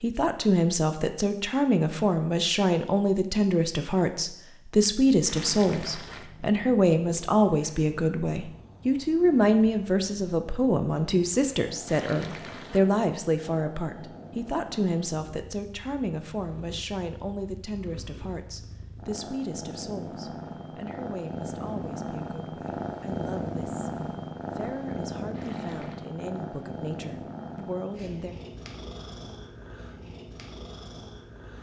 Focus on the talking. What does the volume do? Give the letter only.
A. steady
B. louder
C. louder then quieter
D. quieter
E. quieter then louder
D.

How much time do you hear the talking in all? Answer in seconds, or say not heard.
28 s.